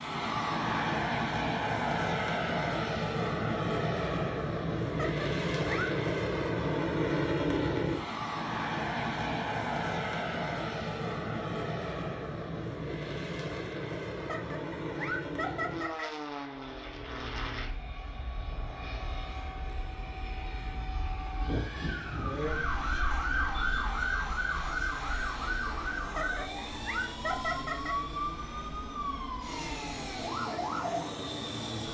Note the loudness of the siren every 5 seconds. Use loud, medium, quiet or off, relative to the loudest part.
off, off, off, quiet, loud, loud, loud.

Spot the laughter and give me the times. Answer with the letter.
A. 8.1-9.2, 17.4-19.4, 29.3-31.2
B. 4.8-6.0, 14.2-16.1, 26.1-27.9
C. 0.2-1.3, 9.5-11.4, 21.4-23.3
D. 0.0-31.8
B.